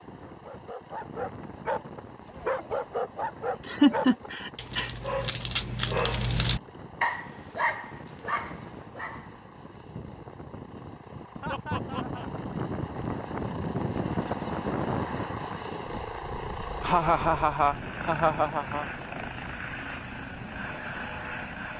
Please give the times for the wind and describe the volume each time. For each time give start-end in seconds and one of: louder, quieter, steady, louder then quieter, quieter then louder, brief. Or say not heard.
0.0-21.7 louder then quieter.